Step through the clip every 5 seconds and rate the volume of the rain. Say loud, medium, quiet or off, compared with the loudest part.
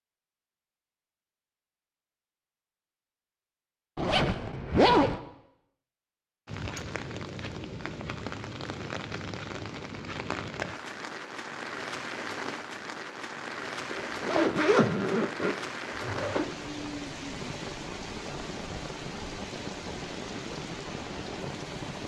off, loud, loud, loud, loud.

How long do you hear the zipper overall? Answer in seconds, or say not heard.
4 s.